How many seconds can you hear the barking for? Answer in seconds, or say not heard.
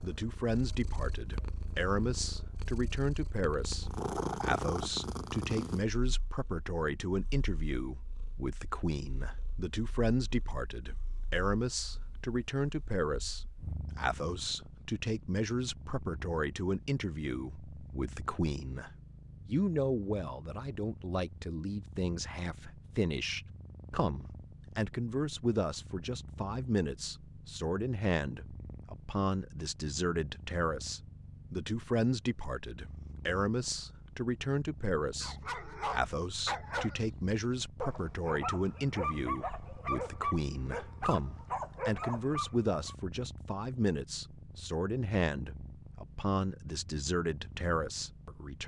8 s.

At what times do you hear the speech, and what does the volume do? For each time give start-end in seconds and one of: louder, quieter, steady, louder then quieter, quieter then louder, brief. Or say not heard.
0.0-48.6 steady.